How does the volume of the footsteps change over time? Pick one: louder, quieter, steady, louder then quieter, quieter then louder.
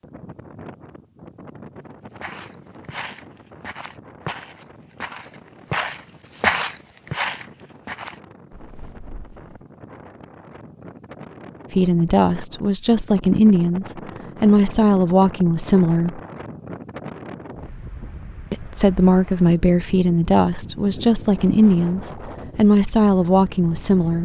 louder then quieter.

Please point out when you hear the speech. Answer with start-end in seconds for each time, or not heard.
11.7-16.2, 18.5-24.1.